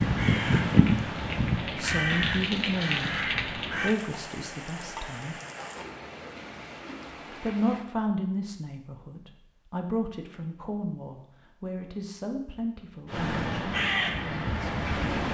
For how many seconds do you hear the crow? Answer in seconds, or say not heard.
6 s.